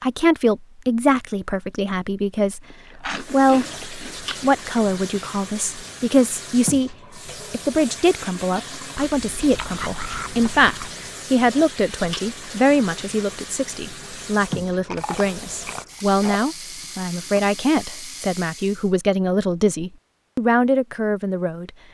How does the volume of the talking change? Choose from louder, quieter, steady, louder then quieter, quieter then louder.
steady.